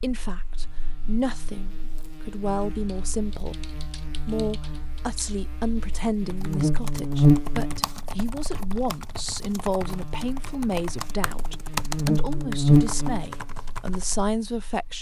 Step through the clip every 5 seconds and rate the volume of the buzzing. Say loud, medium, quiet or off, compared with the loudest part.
quiet, loud, loud.